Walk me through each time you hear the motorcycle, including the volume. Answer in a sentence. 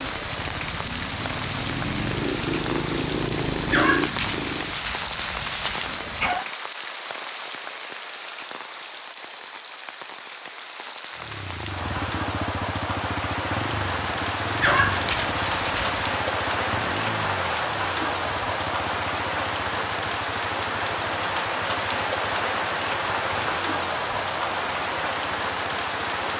The motorcycle can be heard from 0.0 to 4.8 s, getting louder; and from 11.2 to 26.3 s, getting quieter.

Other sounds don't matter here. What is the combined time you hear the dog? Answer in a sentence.
You can hear the dog for 4 seconds altogether.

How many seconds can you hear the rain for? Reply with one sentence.
The rain can be heard for 26 seconds in total.